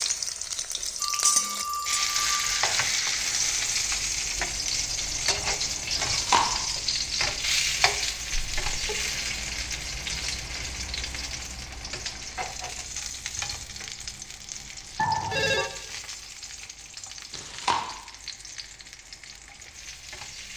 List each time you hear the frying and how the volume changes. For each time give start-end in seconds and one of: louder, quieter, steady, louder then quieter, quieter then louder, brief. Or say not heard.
0.0-20.5 quieter.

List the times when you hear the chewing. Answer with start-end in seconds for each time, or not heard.
6.0-6.4, 17.3-17.8.